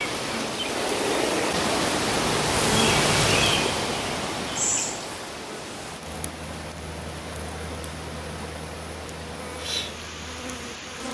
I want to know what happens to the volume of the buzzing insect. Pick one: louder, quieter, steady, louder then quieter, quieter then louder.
louder then quieter.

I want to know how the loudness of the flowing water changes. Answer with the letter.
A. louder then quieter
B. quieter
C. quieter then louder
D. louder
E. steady
B.